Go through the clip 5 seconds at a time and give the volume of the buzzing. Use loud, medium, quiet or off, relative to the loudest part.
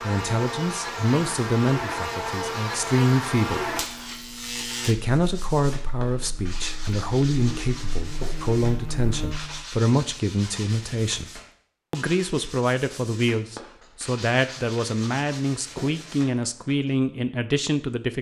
loud, medium, off, off.